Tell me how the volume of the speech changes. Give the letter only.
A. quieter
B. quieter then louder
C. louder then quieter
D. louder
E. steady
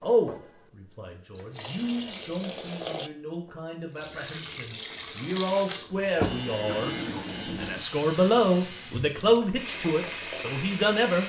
B.